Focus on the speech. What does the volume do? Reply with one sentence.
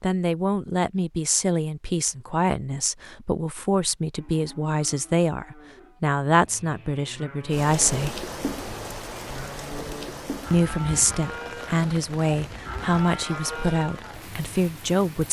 The loudness of the speech stays about the same.